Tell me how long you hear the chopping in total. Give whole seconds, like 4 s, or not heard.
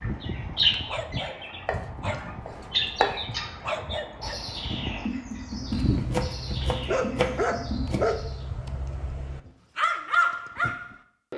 4 s.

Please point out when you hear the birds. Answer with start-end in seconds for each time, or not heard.
0.0-8.4.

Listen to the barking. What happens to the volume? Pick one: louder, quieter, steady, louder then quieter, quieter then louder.
louder.